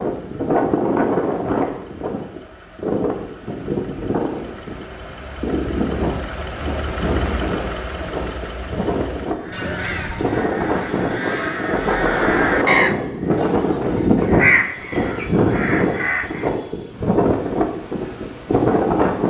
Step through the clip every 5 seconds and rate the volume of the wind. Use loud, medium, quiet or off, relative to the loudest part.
loud, medium, loud, loud.